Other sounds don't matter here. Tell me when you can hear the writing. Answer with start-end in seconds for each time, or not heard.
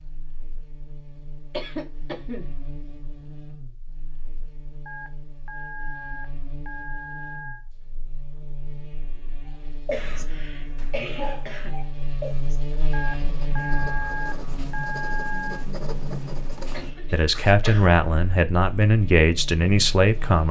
9.4-17.6.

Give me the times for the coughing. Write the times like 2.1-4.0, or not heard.
1.5-2.5, 9.9-11.8, 16.7-17.9.